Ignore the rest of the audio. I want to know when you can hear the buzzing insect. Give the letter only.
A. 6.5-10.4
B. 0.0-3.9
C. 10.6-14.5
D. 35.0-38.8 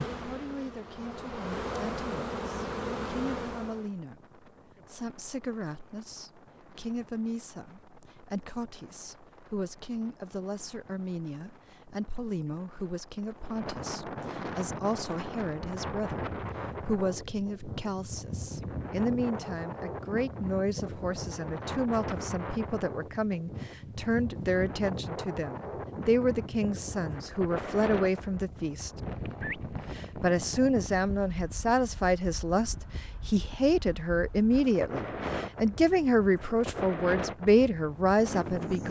B.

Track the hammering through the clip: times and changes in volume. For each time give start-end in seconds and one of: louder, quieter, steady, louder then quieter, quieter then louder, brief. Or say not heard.
not heard.